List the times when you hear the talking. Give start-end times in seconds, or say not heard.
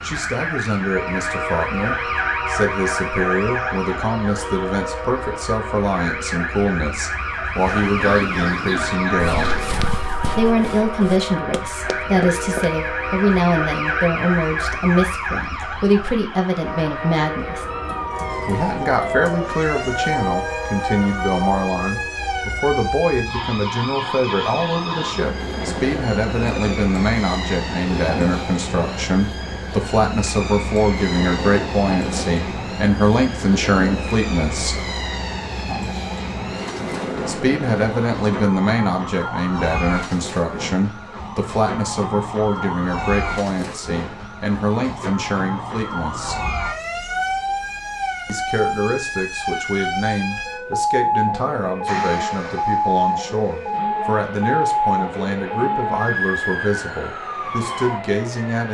0.0-9.6, 10.3-17.6, 18.4-34.9, 37.2-46.4, 48.2-58.7.